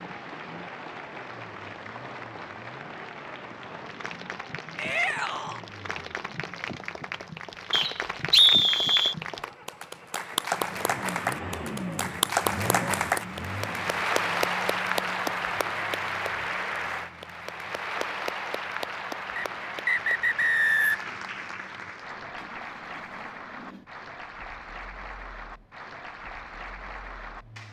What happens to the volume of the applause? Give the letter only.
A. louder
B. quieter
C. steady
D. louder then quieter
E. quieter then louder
D.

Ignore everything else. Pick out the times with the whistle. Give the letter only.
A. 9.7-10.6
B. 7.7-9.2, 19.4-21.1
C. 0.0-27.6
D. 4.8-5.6
B.